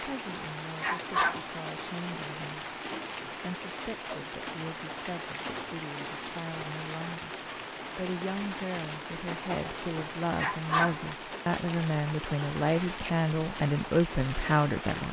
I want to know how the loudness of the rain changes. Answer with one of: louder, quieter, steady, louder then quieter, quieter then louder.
steady.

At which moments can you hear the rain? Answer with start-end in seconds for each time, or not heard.
0.0-15.0.